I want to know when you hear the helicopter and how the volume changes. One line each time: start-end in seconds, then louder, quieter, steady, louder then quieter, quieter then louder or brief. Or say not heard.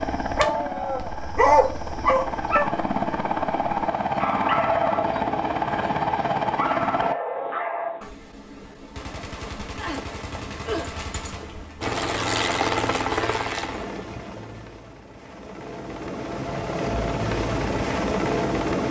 0.0-7.2 louder
11.8-18.8 quieter then louder.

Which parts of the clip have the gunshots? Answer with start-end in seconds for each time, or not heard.
8.0-11.9.